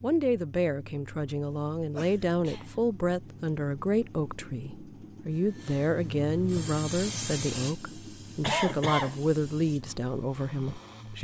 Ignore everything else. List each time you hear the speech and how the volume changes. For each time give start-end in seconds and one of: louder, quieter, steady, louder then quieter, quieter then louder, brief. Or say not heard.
0.0-11.2 steady.